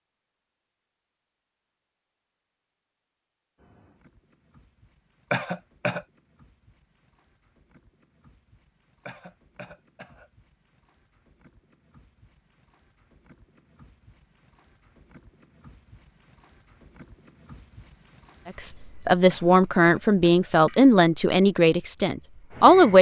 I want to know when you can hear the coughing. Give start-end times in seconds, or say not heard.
5.3-6.0, 9.1-10.3, 19.3-20.5.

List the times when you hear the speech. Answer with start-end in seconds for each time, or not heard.
18.4-22.9.